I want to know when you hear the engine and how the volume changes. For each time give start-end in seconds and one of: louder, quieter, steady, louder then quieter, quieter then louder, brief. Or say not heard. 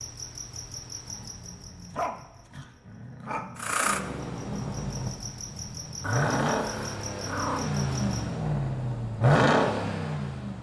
3.5-10.5 louder.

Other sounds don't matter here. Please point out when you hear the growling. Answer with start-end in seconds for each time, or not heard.
1.1-3.8, 6.0-7.8.